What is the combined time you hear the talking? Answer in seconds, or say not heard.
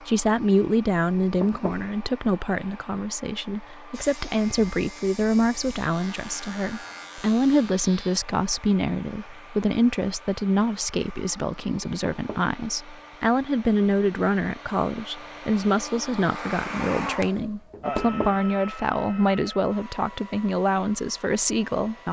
22 s.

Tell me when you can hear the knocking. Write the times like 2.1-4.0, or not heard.
1.2-1.9, 11.8-12.5, 17.7-18.4.